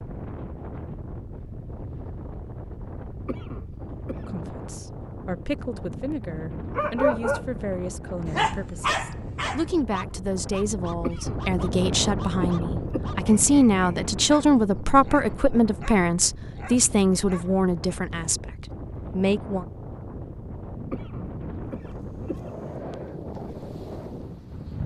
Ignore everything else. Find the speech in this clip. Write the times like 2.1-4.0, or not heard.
4.2-19.6.